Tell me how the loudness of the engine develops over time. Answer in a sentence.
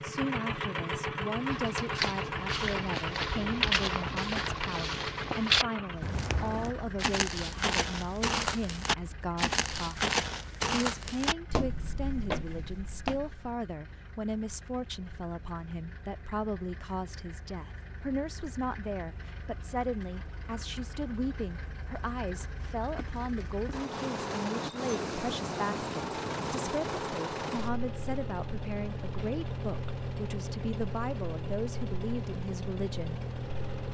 The volume of the engine goes down, then up.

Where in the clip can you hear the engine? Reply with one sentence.
The engine can be heard from 0.0 to 33.8 s.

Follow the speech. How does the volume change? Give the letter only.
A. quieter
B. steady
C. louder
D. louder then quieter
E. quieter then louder
B.